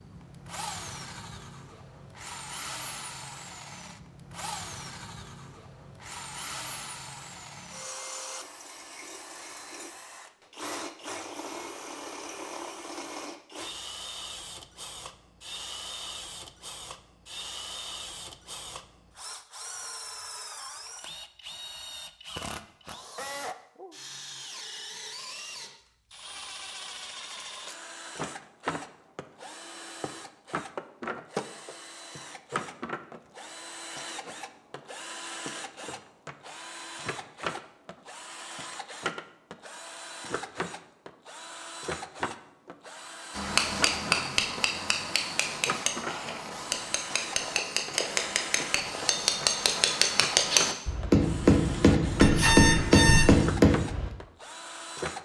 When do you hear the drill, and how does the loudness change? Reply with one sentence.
The drill can be heard from 0.0 to 55.1 s, at a steady volume.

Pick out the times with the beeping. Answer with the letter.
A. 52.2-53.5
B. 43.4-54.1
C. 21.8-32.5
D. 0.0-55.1
A.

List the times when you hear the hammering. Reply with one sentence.
The hammering can be heard from 43.4 to 54.1 s.